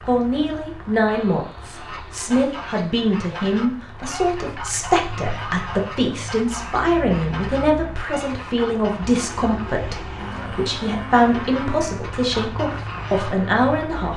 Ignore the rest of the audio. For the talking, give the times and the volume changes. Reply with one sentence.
You can hear the talking from 0.1 to 14.1 s, at a steady volume.